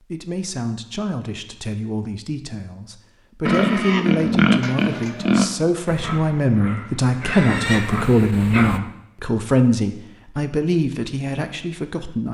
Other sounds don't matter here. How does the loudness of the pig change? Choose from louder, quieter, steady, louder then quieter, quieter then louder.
quieter then louder.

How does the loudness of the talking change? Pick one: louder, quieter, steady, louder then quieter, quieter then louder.
louder.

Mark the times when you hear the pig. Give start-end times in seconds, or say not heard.
3.5-8.8.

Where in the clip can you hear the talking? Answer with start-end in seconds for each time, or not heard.
0.1-12.2.